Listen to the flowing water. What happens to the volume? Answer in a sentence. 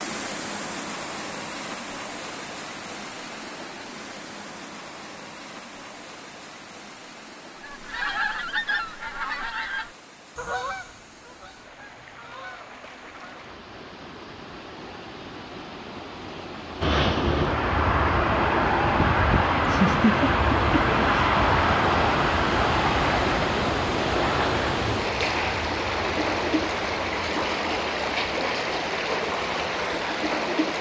The volume of the flowing water goes down, then up.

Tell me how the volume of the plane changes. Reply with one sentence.
The volume of the plane goes down.